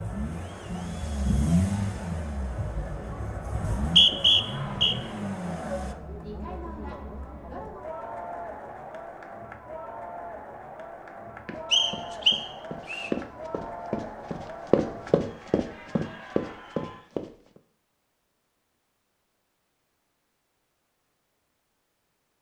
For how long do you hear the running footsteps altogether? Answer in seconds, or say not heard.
6 s.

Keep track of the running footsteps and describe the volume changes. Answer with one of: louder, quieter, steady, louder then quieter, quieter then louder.
louder.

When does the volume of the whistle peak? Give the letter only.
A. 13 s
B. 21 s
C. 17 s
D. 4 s
D.